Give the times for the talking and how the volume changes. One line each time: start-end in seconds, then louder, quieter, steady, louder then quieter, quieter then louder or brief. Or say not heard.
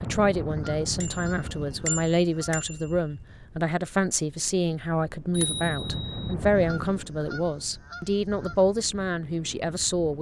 0.0-10.1 steady.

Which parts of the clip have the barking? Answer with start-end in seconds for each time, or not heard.
not heard.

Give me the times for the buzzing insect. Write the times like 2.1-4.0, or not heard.
not heard.